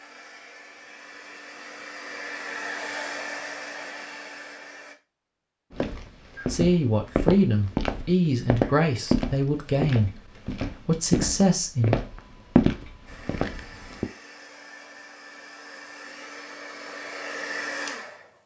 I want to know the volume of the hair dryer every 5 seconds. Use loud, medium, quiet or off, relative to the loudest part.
loud, off, medium, loud.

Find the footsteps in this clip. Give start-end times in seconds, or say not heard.
5.7-14.1.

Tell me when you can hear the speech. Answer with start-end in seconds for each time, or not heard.
6.5-12.0.